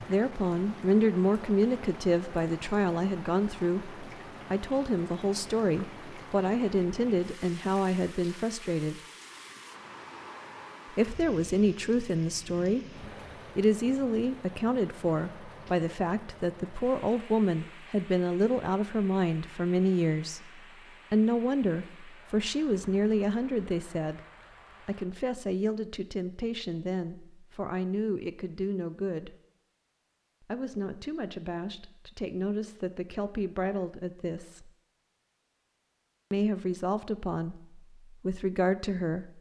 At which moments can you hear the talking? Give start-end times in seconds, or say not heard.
0.0-9.0, 10.9-24.2, 24.9-29.4, 30.4-34.7, 36.3-39.3.